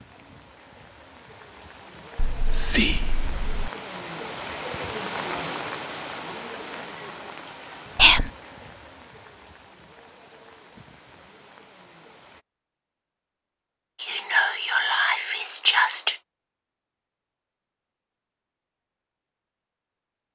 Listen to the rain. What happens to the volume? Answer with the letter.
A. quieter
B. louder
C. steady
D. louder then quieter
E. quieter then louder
D.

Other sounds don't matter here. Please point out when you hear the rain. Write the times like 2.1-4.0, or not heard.
0.0-12.4.